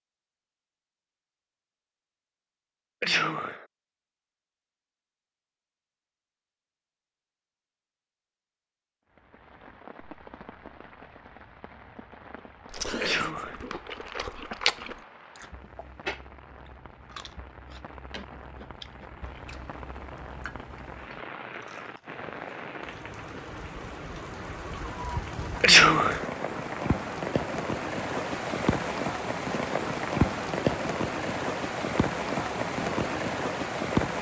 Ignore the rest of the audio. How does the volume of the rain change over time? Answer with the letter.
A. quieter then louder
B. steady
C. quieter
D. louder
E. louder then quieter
D.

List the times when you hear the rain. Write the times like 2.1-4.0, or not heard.
9.1-34.1.